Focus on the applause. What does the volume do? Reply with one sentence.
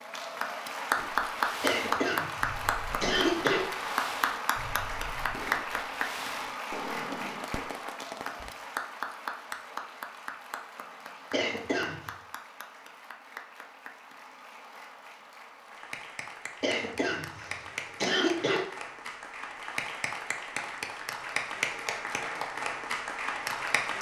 The volume of the applause goes down, then up.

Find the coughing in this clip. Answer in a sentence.
You can hear the coughing from 1.6 to 3.6 s, from 11.3 to 12.1 s and from 16.6 to 18.6 s.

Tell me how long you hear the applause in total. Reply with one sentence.
You can hear the applause for 24 seconds altogether.